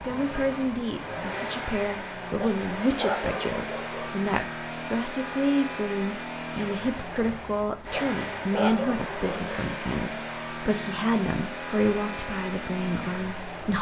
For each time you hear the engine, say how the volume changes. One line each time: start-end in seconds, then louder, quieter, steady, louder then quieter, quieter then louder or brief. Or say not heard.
0.0-13.7 steady.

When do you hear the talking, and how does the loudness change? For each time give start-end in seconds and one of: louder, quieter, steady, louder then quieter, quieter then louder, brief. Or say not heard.
0.1-13.7 steady.